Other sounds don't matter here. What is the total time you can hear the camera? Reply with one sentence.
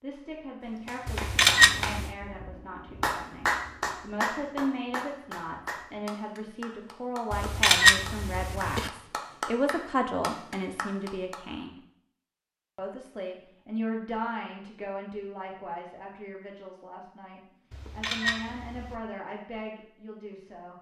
You can hear the camera for 4 seconds altogether.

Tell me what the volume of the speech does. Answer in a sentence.
The loudness of the speech goes up, then down.